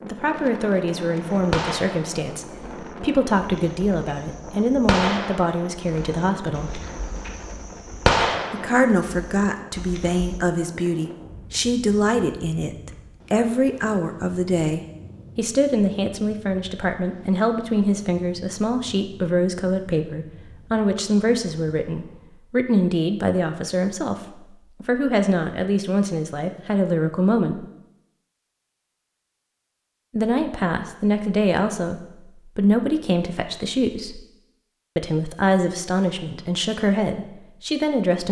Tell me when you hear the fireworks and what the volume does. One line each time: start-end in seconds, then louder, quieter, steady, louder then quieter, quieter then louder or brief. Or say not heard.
1.2-10.4 louder then quieter.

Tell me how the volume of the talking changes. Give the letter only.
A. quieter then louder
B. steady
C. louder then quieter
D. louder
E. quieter
B.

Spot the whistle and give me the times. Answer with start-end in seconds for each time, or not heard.
not heard.